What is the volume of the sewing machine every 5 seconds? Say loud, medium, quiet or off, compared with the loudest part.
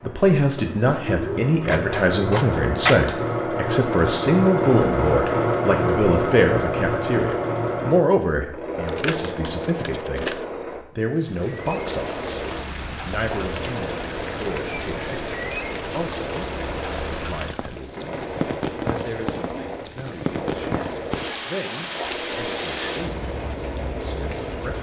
loud, loud, medium, medium, medium.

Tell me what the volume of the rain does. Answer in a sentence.
The volume of the rain stays about the same.